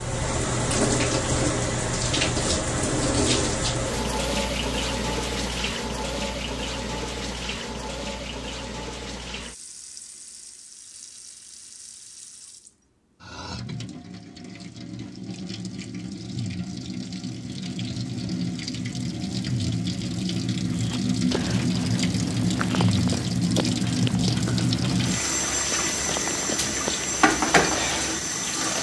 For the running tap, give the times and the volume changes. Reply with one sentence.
You can hear the running tap from 0.0 to 28.7 s, getting quieter then louder.